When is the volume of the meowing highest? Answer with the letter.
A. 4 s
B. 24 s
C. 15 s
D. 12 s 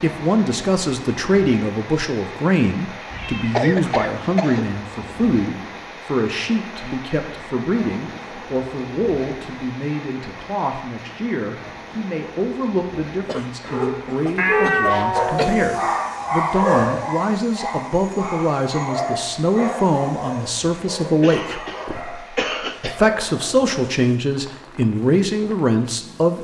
C.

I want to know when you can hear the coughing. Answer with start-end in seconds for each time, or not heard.
3.5-4.7, 13.2-15.7, 21.2-23.0.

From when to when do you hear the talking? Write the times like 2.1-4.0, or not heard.
0.0-26.3.